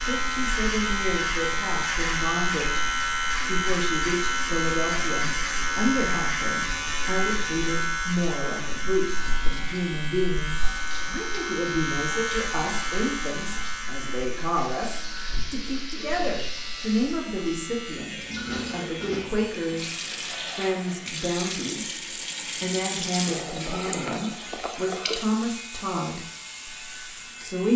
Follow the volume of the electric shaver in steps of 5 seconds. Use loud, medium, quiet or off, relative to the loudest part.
loud, loud, medium, quiet, quiet, quiet.